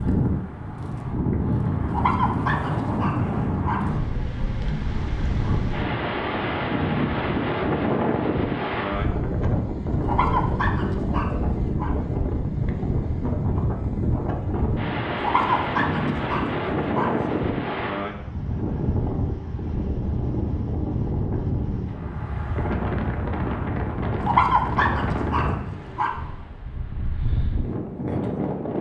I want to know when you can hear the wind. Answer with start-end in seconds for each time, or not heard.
0.0-28.7.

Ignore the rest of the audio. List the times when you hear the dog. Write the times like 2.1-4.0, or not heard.
1.9-3.8, 10.0-11.9, 15.2-17.1, 24.2-26.1.